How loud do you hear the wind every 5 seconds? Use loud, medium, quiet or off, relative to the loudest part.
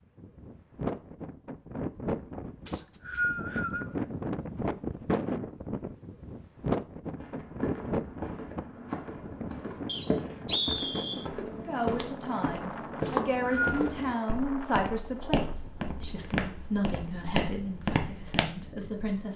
loud, loud, medium, quiet.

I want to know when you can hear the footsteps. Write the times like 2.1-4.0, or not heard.
7.2-18.4.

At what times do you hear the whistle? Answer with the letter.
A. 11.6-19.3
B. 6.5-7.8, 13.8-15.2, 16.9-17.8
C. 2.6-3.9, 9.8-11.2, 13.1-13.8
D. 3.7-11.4
C.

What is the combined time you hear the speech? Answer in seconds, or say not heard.
8 s.